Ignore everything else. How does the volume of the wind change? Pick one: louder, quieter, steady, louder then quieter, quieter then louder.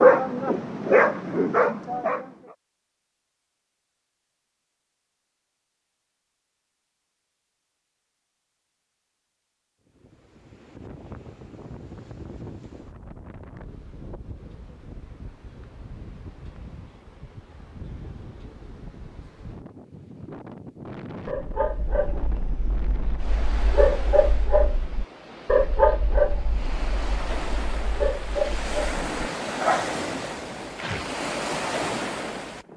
louder.